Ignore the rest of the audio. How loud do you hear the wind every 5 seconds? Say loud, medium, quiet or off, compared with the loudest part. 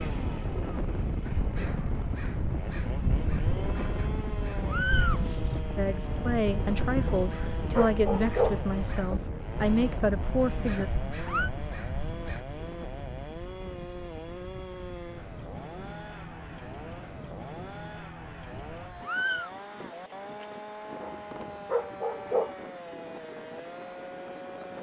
loud, loud, medium, quiet, medium.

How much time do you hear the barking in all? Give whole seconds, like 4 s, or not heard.
3 s.